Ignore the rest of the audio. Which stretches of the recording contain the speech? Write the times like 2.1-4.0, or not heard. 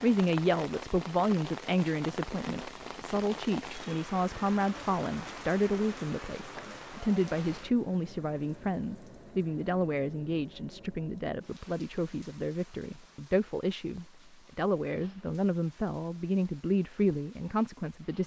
0.0-18.2.